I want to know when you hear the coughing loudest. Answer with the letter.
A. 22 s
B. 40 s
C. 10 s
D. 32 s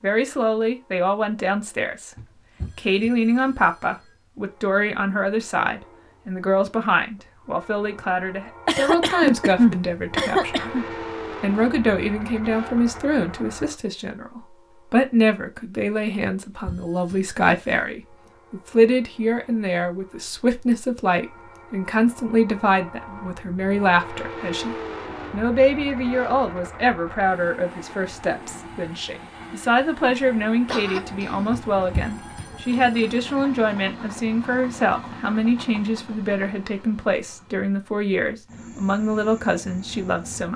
C.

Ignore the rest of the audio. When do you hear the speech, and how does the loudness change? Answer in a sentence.
You can hear the speech from 0.0 to 10.8 s, at a steady volume; and from 11.4 to 40.5 s, at a steady volume.